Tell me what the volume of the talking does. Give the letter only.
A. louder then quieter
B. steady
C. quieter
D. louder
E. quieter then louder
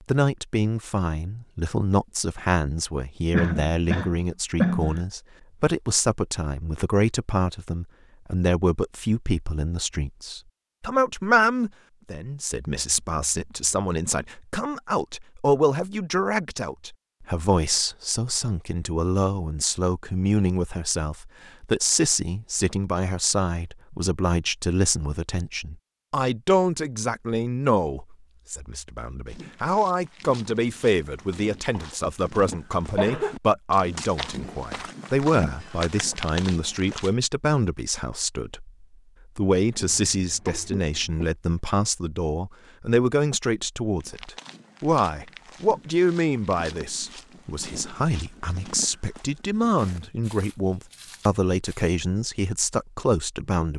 B.